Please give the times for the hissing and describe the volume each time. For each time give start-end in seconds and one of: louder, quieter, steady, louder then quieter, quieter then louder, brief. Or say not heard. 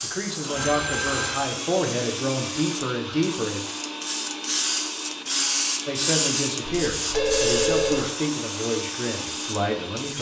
0.0-10.1 louder then quieter.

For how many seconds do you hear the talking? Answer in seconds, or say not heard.
8 s.